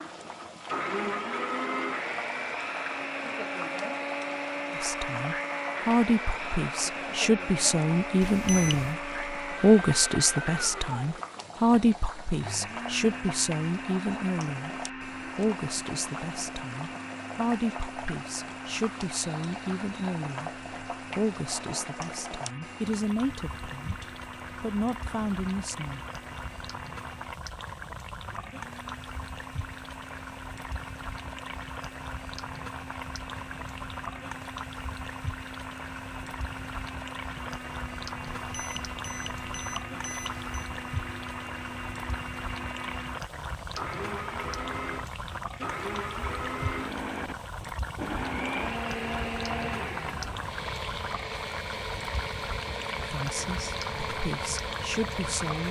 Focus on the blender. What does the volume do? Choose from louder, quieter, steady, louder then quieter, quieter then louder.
quieter then louder.